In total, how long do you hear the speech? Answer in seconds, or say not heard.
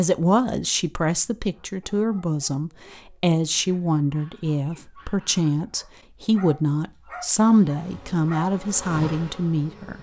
10 s.